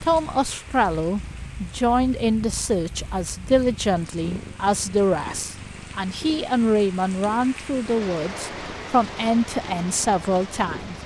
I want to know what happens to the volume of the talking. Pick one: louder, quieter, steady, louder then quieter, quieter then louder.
steady.